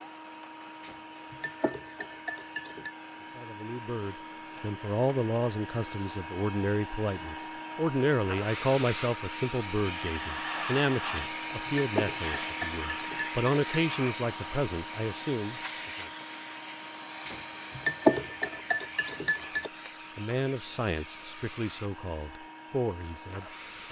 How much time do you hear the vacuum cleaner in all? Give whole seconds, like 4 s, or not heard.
24 s.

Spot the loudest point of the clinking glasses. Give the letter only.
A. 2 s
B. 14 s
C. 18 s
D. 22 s
C.